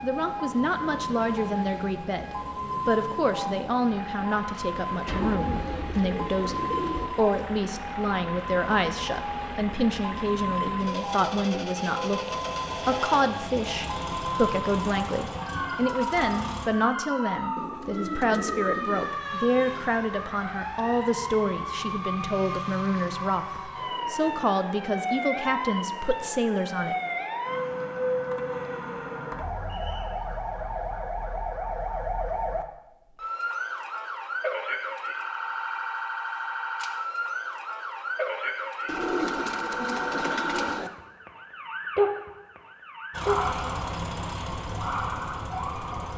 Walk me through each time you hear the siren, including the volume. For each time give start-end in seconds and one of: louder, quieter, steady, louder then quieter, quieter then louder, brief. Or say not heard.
0.0-46.1 steady.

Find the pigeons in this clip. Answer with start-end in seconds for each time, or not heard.
5.0-7.1, 17.6-19.1, 38.9-40.9.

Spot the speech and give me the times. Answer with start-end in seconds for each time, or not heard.
0.0-26.9.